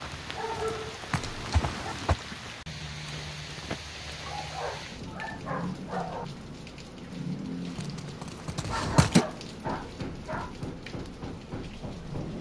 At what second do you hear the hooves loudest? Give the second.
9 s.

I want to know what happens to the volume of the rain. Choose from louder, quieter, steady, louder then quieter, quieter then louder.
steady.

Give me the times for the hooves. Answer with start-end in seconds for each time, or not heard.
0.0-2.1, 7.7-9.2.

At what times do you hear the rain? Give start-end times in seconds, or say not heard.
0.0-12.3.